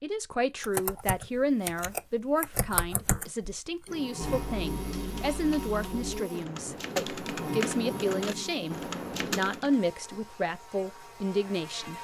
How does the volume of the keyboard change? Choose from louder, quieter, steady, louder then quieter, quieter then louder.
quieter then louder.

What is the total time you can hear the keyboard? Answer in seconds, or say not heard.
9 s.